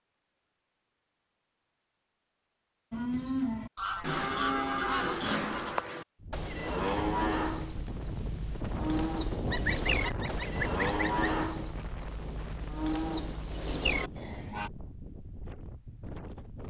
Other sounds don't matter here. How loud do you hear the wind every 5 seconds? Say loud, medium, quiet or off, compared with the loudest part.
off, loud, loud, medium.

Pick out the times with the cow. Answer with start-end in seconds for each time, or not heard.
2.9-14.7.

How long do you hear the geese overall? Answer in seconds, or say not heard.
4 s.